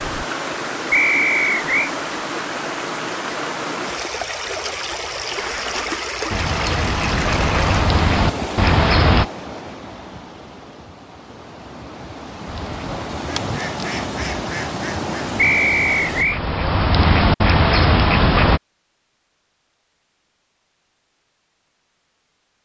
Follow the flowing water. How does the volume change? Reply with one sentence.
The loudness of the flowing water goes down, then up.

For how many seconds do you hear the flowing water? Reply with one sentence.
The flowing water can be heard for 16 seconds in total.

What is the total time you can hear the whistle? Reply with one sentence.
The whistle can be heard for 2 seconds in total.